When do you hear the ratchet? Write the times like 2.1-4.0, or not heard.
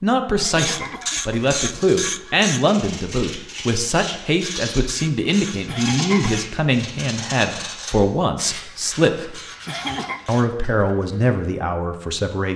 0.6-2.6, 4.4-6.6, 8.4-10.5.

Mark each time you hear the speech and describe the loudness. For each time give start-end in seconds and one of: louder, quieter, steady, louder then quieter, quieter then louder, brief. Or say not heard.
0.0-9.4 steady
10.2-12.5 brief.